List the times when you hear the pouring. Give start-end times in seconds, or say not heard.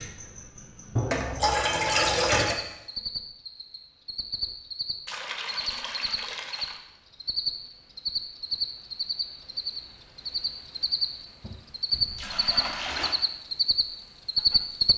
0.9-2.5, 5.0-6.8, 11.9-13.2.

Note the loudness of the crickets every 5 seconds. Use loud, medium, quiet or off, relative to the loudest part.
medium, medium, loud.